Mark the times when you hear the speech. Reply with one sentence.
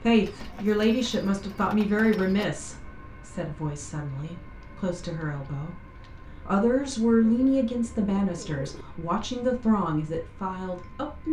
The speech can be heard from 0.0 to 5.8 s and from 6.5 to 11.2 s.